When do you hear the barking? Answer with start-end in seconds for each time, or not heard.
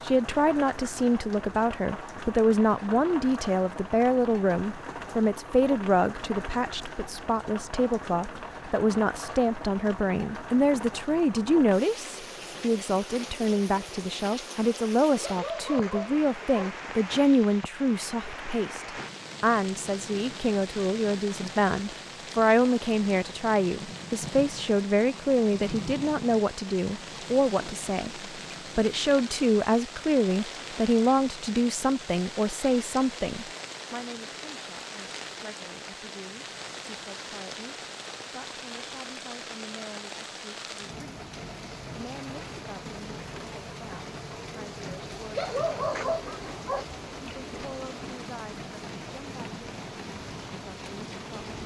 15.2-16.7, 45.4-46.9.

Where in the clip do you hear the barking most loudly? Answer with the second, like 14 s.
46 s.